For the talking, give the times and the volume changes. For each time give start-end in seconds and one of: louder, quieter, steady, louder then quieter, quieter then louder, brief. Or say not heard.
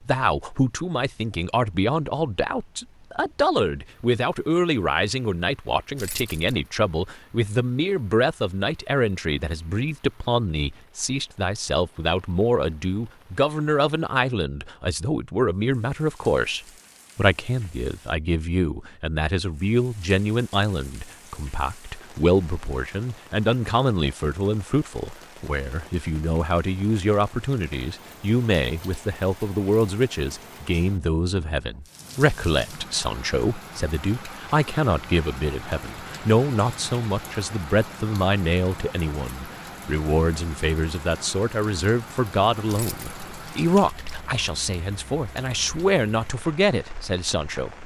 0.1-47.8 steady.